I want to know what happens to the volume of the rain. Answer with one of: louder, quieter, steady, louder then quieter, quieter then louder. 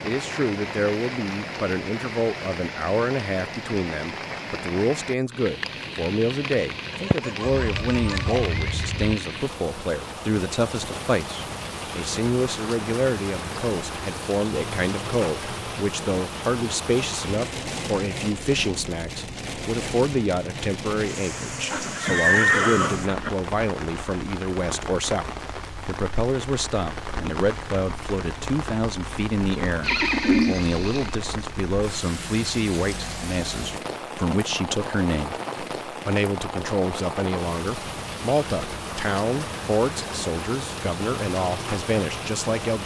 steady.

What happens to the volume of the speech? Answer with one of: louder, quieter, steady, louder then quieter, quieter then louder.
steady.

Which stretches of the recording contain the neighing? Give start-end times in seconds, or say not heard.
7.7-9.2, 21.7-23.3, 29.8-31.1.